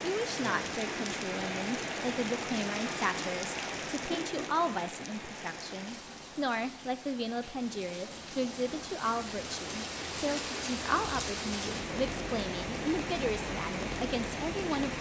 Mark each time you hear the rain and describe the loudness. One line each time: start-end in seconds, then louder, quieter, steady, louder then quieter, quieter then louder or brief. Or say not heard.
0.0-14.9 quieter then louder.